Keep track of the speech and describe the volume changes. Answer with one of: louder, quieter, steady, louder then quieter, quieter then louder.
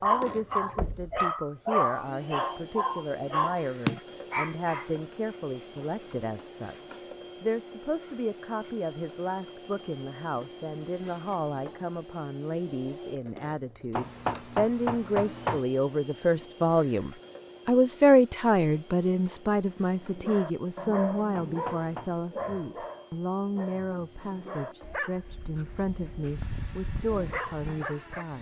louder then quieter.